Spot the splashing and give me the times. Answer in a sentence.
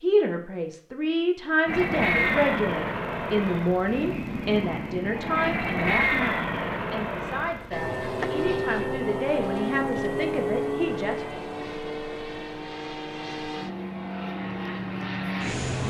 You can't hear the splashing here.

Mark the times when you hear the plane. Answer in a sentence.
You can hear the plane from 1.6 to 15.8 s.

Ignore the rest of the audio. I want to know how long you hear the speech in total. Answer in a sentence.
You can hear the speech for 11 seconds altogether.